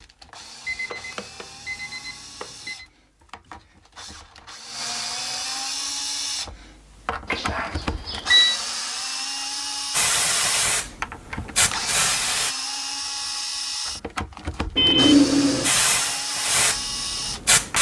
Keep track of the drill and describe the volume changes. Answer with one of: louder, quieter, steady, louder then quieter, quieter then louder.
louder.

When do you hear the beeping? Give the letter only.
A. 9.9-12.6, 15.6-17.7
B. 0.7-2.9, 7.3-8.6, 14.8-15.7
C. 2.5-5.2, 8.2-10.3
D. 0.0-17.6
B.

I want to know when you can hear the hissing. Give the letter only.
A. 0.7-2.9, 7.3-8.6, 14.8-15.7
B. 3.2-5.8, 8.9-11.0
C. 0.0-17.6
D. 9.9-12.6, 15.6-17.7
D.